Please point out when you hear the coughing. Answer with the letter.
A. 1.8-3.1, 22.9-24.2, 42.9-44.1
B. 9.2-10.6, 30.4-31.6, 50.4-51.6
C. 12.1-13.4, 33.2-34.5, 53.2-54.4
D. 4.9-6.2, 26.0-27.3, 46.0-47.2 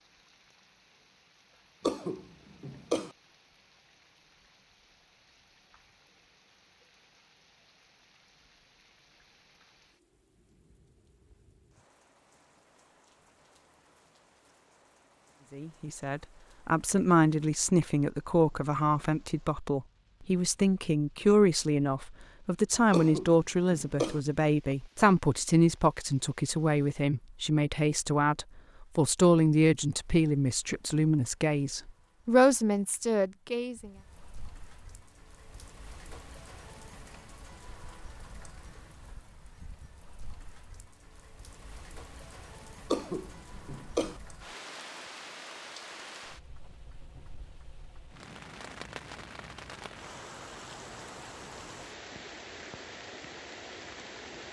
A.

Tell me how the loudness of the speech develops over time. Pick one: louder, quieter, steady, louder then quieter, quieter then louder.
steady.